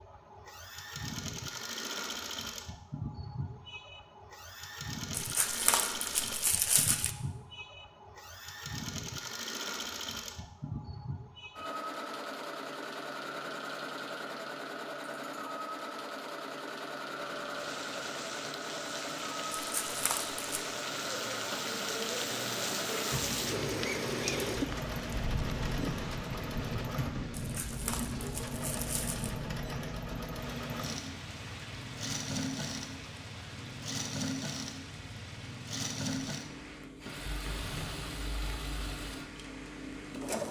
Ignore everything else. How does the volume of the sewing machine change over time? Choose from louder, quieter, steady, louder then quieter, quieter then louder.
steady.